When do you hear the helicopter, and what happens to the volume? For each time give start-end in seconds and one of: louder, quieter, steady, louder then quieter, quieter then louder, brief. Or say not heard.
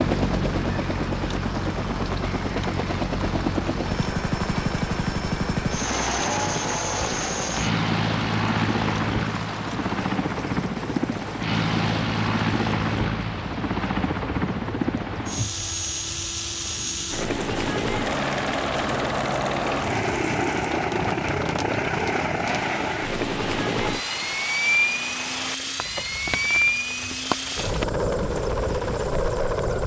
0.0-29.8 steady.